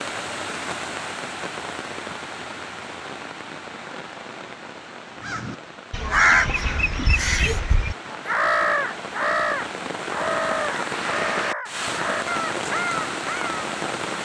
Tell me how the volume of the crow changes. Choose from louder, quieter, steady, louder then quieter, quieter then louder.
quieter.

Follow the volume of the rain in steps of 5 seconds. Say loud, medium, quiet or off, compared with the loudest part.
medium, medium, loud.